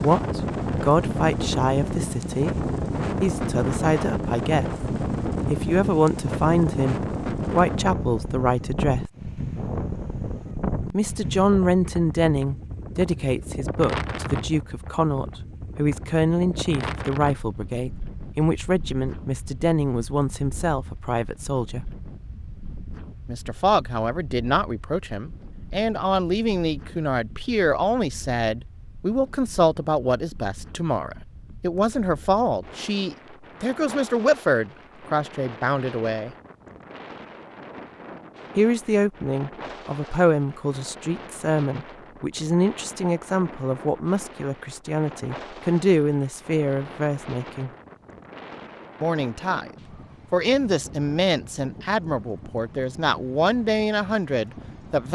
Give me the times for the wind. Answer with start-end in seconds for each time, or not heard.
0.0-55.1.